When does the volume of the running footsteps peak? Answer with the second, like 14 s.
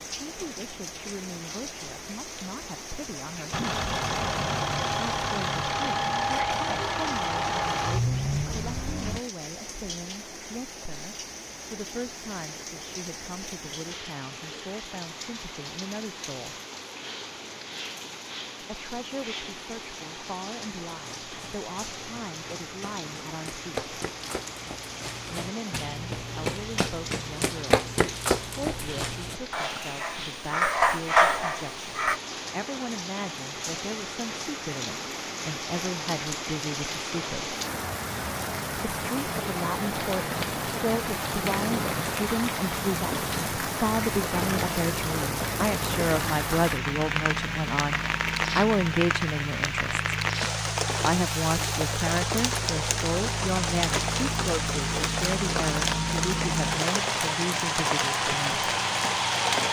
28 s.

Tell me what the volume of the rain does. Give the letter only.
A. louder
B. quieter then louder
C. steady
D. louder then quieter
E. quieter
A.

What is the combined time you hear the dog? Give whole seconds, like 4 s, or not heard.
3 s.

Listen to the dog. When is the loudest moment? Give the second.
31 s.